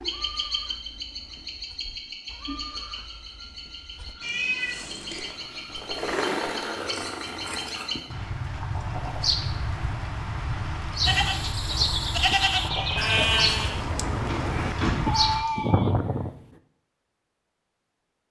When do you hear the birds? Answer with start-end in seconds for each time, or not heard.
0.0-15.4.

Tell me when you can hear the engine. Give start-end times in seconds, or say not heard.
4.8-8.2.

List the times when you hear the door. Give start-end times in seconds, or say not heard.
14.2-15.5.